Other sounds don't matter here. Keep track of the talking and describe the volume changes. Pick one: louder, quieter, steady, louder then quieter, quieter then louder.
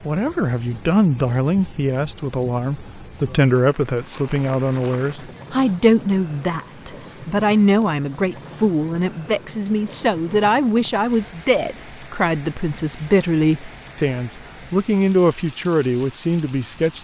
steady.